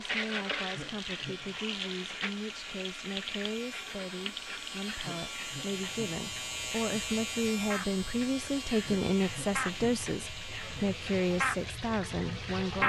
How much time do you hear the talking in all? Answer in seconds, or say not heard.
13 s.